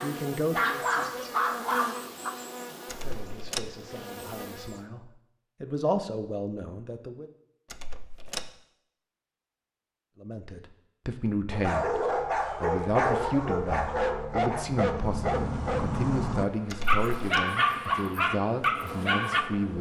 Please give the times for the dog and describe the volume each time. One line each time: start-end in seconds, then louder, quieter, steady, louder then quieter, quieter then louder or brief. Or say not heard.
0.0-2.3 brief
11.5-19.4 steady.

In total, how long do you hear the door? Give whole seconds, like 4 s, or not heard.
2 s.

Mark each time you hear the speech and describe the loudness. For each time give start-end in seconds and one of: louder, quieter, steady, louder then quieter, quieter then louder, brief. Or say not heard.
0.0-1.8 brief
3.0-7.3 louder then quieter
10.2-19.7 steady.